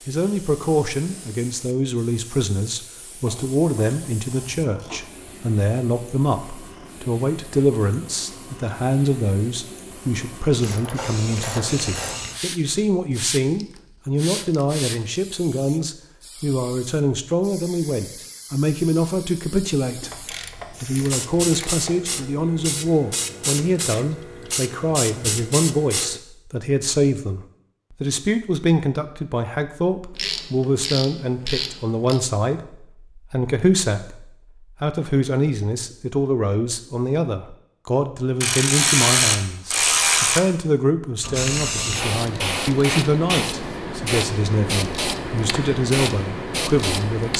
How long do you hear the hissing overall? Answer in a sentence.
You can hear the hissing for 32 seconds altogether.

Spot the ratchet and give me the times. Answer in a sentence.
The ratchet can be heard from 3.2 to 5.0 s, from 10.6 to 12.2 s, from 20.0 to 22.1 s, from 30.1 to 32.2 s and from 38.4 to 40.4 s.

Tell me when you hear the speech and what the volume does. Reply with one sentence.
You can hear the speech from 0.1 to 47.3 s, at a steady volume.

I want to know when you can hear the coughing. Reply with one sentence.
The coughing can't be heard in this clip.